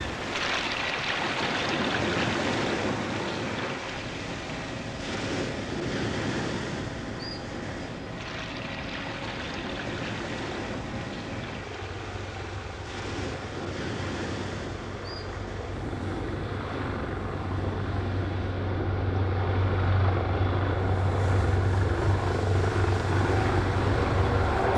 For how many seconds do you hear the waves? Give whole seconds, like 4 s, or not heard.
25 s.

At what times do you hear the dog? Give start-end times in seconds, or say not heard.
not heard.